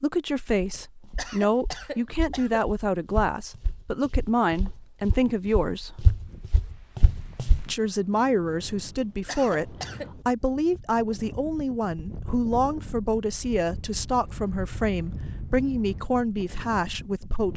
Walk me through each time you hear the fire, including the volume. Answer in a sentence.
You can't hear the fire here.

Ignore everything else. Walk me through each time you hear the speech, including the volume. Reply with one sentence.
The speech can be heard from 0.0 to 6.0 s, at a steady volume; and from 7.5 to 17.5 s, at a steady volume.